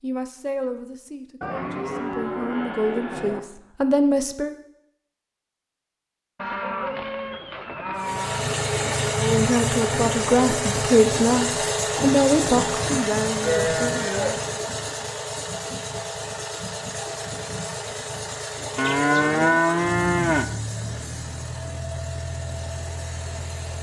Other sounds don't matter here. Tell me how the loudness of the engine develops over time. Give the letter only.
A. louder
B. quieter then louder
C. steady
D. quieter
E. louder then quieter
D.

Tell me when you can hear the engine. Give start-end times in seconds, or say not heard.
8.0-23.7.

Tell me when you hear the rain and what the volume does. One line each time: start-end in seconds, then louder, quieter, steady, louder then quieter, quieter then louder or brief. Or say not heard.
not heard.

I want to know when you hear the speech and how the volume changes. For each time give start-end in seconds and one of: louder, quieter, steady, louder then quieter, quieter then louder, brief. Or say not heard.
0.0-4.5 quieter then louder
9.2-14.4 quieter.